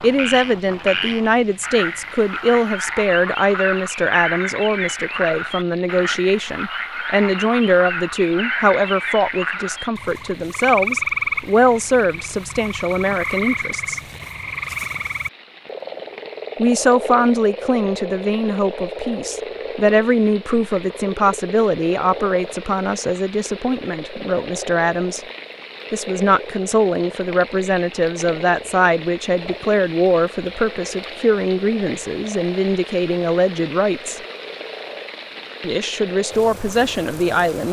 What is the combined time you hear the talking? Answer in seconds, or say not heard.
33 s.